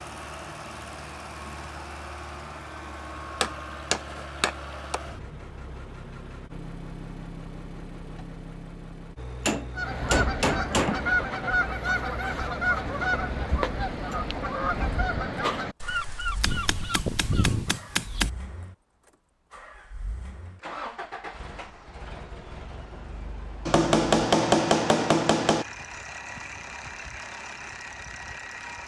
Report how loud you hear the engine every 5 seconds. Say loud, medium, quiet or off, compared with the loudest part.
loud, loud, loud, medium, loud, loud.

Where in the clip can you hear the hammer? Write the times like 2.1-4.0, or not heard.
3.4-5.0, 9.4-11.2, 16.4-18.3, 23.6-25.6.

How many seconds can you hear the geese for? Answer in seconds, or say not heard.
8 s.